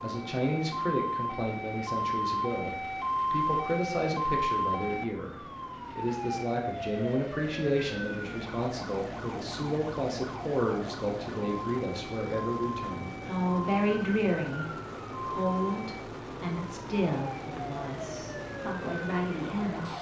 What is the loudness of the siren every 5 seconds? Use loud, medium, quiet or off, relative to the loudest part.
loud, medium, medium, medium.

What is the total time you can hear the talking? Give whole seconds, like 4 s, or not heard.
20 s.